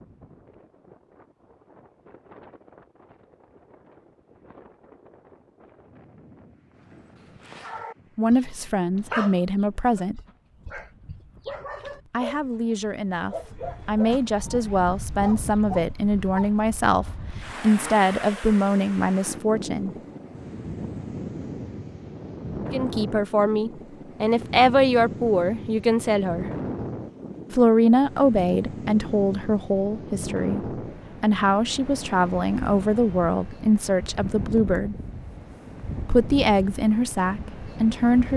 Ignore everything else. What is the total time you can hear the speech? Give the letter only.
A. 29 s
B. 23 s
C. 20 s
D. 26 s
B.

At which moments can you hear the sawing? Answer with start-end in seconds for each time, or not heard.
not heard.